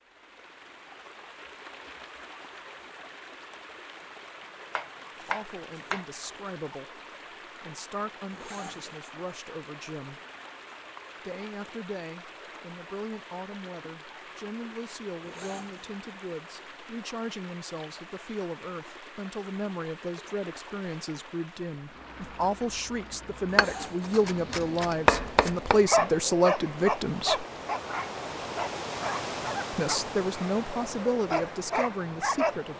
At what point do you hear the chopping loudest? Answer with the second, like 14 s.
25 s.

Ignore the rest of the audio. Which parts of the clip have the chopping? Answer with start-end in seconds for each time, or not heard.
4.8-6.0, 23.6-25.8.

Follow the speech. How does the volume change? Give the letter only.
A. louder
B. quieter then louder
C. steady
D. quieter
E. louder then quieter
A.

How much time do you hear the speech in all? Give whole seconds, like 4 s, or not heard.
24 s.